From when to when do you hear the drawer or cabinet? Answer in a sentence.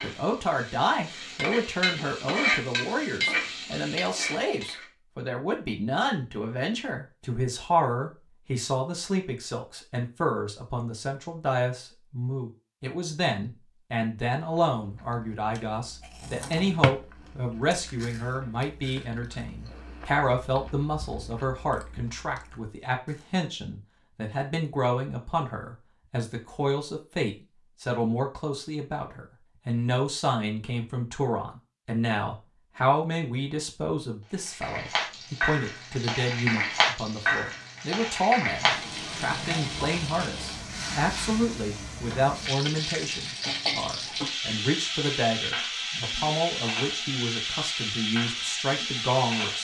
The drawer or cabinet can be heard from 16.2 to 16.9 s.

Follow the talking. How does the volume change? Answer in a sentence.
The volume of the talking stays about the same.